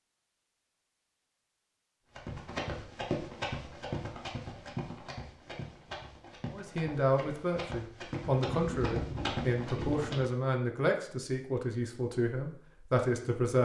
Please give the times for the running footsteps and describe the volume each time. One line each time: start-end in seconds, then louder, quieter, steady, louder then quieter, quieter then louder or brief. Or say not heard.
2.1-10.3 quieter then louder.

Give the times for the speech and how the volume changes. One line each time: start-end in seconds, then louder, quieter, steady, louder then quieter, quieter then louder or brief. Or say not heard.
6.5-13.6 steady.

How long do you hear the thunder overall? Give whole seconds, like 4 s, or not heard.
2 s.